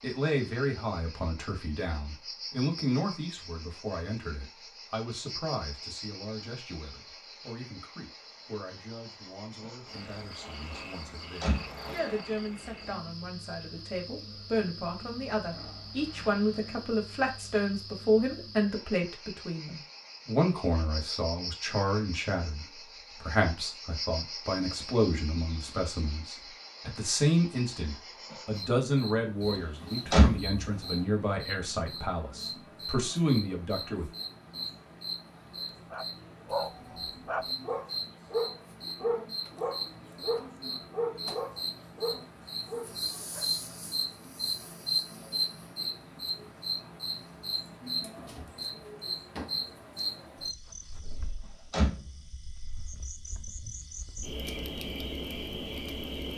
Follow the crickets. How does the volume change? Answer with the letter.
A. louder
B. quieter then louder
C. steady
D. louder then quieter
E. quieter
A.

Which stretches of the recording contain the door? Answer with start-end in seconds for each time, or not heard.
11.4-11.8, 30.1-30.6, 51.7-52.2.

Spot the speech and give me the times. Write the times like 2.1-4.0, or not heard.
0.0-34.1.